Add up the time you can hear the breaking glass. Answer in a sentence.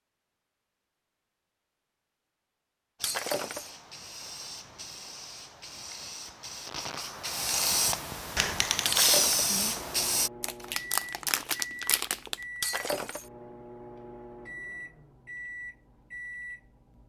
The breaking glass can be heard for 2 seconds in total.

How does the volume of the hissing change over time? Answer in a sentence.
The volume of the hissing goes up.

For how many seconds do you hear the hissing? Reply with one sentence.
You can hear the hissing for 7 seconds altogether.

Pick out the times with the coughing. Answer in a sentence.
The coughing can't be heard in this clip.